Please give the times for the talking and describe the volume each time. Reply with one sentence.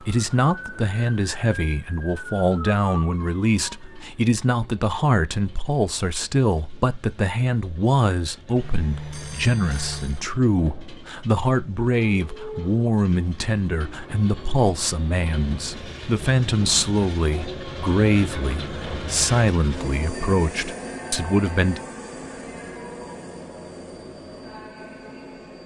You can hear the talking from 0.0 to 21.8 s, at a steady volume.